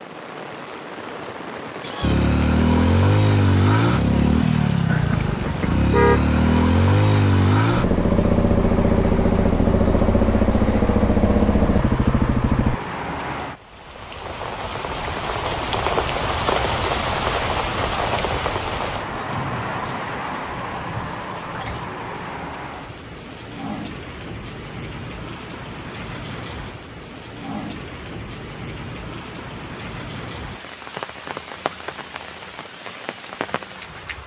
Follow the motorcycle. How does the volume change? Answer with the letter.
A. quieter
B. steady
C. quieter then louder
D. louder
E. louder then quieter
B.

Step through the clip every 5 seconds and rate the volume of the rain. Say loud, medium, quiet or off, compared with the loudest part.
medium, medium, medium, loud, medium, medium, medium.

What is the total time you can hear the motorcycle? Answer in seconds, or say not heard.
11 s.